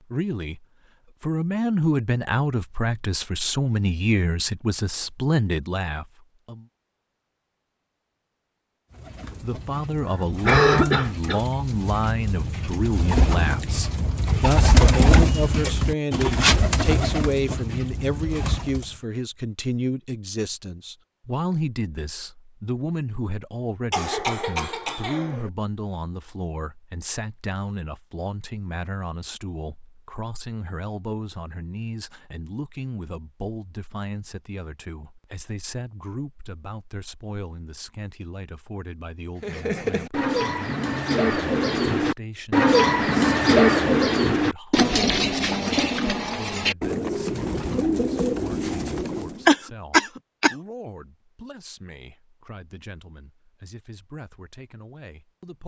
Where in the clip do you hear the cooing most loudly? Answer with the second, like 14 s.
44 s.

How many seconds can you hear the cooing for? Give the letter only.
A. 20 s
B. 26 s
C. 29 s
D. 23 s
A.